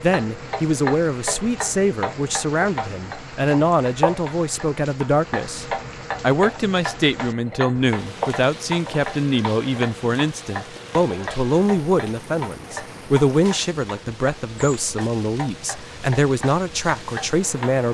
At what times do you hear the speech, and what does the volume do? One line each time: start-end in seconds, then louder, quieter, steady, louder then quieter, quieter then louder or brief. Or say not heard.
0.0-17.8 steady.